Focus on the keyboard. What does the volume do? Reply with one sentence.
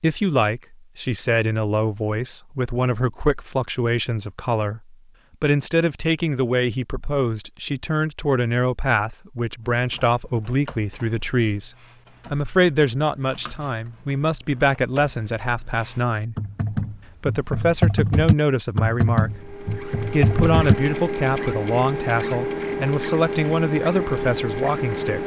The volume of the keyboard goes up.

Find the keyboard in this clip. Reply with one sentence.
You can hear the keyboard from 9.7 to 20.8 s.